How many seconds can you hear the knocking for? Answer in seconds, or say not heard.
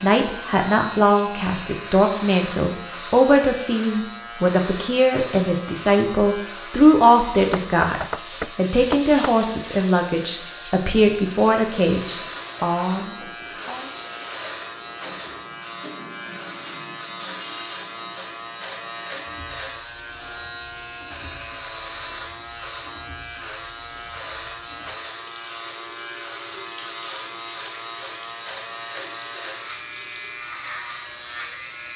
2 s.